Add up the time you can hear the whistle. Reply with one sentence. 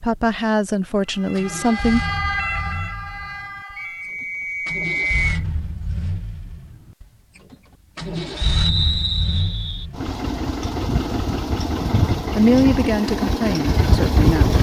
You can hear the whistle for 3 seconds altogether.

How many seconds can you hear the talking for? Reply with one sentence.
You can hear the talking for 4 seconds altogether.